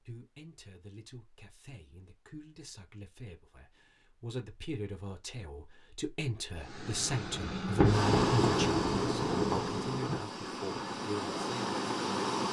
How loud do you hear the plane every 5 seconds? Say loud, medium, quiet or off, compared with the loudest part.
off, loud, loud.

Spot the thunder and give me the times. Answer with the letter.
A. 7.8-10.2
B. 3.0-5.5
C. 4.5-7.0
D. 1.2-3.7
A.